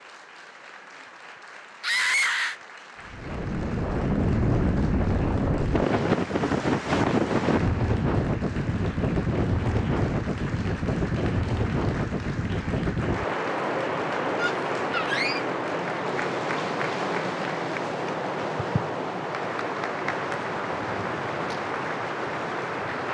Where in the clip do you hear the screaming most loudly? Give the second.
2 s.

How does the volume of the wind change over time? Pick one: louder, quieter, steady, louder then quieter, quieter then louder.
quieter.